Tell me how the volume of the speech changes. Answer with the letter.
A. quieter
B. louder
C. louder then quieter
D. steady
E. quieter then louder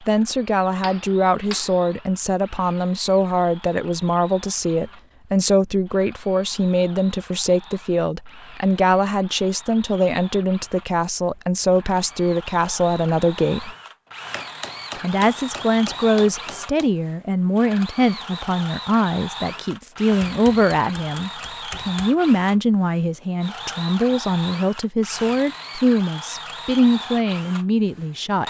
D.